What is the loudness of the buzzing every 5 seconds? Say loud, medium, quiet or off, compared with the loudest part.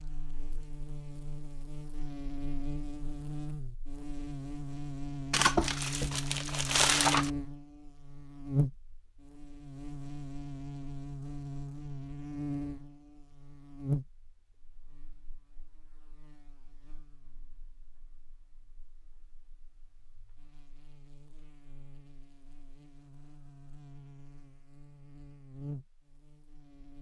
medium, loud, loud, quiet, quiet, medium.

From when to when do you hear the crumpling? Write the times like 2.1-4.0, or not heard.
5.3-7.3.